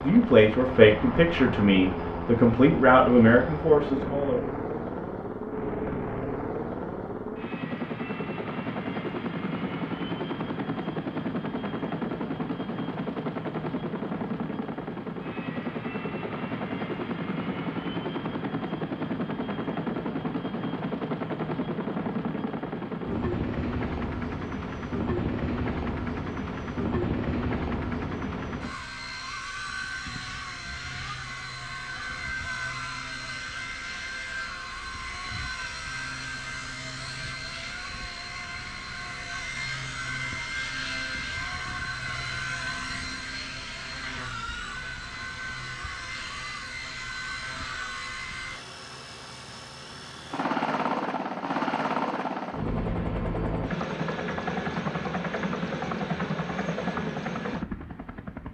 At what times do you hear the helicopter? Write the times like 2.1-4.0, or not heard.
0.0-58.4.